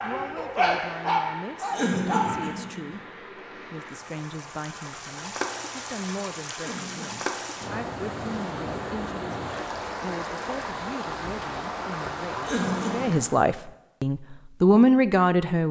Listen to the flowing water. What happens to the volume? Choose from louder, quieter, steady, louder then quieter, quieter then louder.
louder.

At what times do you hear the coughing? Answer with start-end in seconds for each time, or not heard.
1.7-3.0, 6.5-7.2, 12.4-13.2.